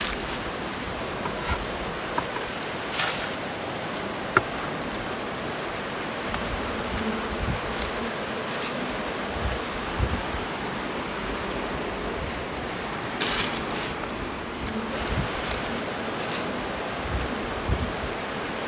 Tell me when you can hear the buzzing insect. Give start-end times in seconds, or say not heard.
0.0-18.6.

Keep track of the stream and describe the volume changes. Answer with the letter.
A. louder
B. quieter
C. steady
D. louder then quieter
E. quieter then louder
C.